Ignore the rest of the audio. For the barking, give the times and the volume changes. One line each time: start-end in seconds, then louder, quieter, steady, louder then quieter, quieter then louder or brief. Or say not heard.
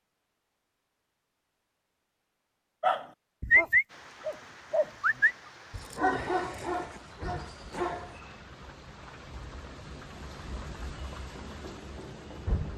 2.8-8.2 quieter.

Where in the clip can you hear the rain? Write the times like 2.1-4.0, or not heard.
3.9-12.7.